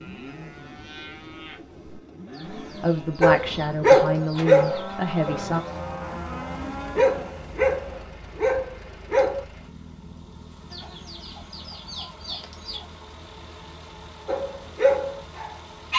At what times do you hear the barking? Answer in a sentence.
The barking can be heard from 3.2 to 9.4 s and from 14.2 to 15.9 s.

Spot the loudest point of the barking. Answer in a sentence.
The volume of the barking peaks at 4 seconds.